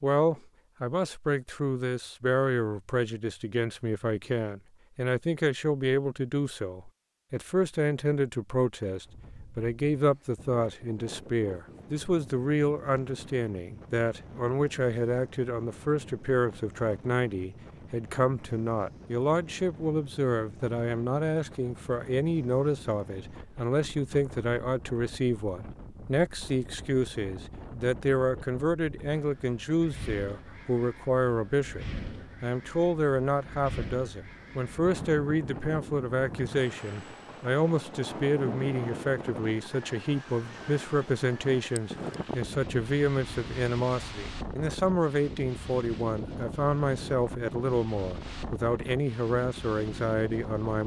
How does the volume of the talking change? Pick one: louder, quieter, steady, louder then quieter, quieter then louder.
steady.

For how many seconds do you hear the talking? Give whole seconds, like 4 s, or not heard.
51 s.